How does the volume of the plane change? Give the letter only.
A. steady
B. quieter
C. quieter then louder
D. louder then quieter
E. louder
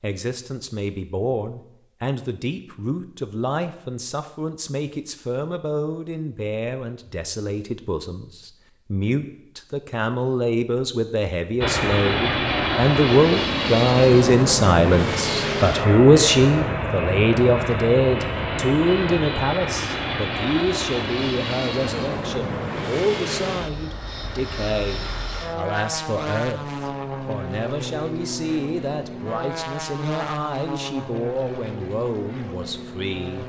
B.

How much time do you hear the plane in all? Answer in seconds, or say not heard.
22 s.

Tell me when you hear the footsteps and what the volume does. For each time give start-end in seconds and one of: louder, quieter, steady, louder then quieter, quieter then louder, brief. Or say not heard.
not heard.